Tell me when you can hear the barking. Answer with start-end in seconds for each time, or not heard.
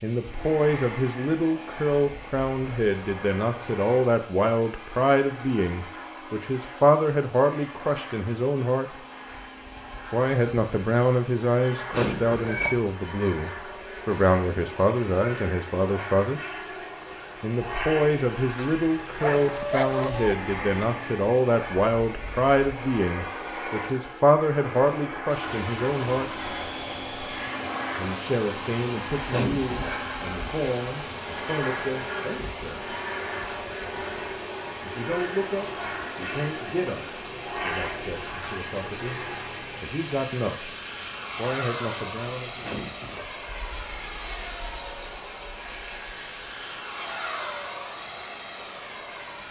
19.2-20.4.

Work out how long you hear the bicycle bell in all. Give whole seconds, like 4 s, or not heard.
2 s.